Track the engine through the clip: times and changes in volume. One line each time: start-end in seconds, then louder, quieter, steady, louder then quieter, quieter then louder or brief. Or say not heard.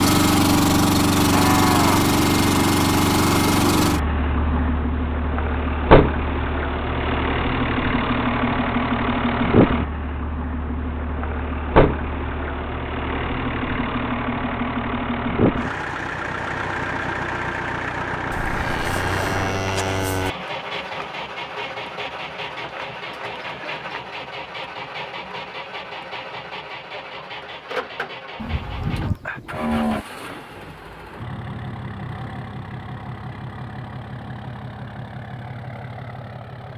0.0-36.7 quieter.